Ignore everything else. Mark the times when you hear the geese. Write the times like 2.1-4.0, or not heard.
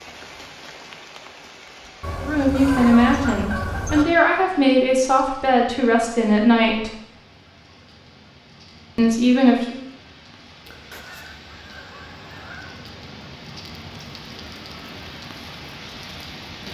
2.0-4.0, 10.7-12.7.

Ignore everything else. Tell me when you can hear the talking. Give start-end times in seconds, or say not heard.
2.1-6.9, 8.9-9.8.